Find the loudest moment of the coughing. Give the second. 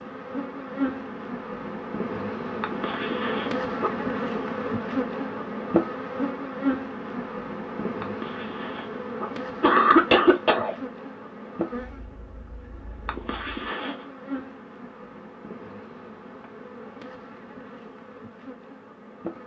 10 s.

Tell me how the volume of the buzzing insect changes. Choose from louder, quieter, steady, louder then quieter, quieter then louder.
quieter.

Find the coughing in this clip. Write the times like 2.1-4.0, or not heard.
2.6-3.9, 8.0-10.8, 13.1-13.9.